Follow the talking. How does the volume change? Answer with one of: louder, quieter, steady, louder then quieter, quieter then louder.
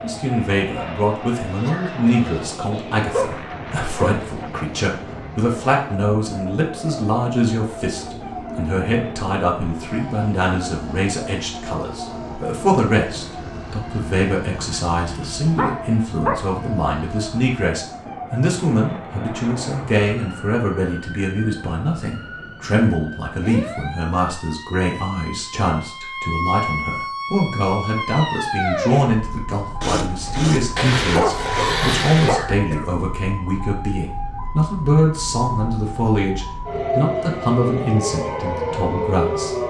steady.